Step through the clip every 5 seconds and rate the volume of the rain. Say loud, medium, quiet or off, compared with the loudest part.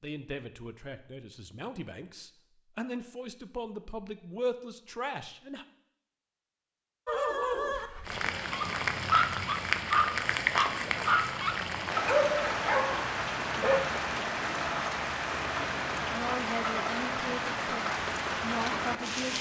off, loud, loud, loud.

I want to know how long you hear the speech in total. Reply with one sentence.
You can hear the speech for 9 seconds altogether.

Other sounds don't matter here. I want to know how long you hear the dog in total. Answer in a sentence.
The dog can be heard for 7 seconds in total.